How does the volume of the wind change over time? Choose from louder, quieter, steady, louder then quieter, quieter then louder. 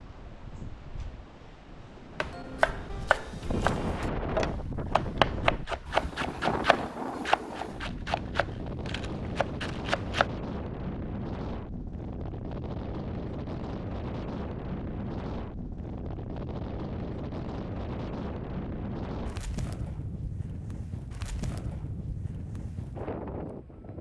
steady.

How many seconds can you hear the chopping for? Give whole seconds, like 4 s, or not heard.
8 s.